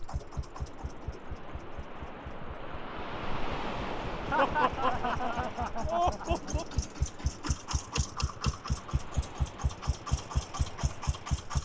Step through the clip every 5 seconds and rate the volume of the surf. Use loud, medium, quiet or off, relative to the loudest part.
loud, medium, medium.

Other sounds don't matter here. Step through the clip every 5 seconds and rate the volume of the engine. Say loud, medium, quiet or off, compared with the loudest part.
medium, loud, loud.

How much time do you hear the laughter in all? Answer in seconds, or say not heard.
2 s.